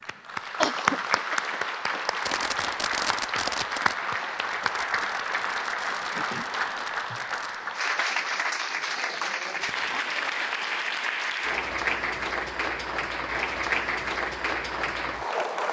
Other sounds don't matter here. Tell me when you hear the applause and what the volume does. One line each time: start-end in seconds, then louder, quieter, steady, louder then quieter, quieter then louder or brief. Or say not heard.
0.0-15.6 steady.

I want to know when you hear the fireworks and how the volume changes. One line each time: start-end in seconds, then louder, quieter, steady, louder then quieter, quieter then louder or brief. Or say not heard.
2.2-7.6 quieter.